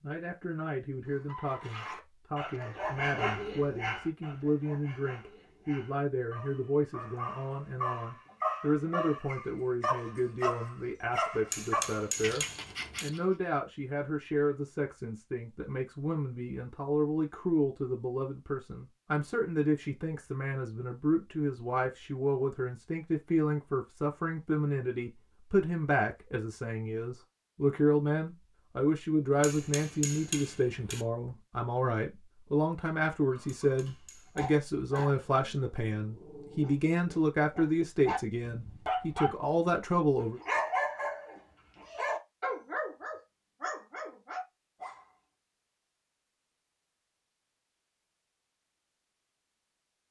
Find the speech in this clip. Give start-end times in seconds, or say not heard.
0.0-40.4.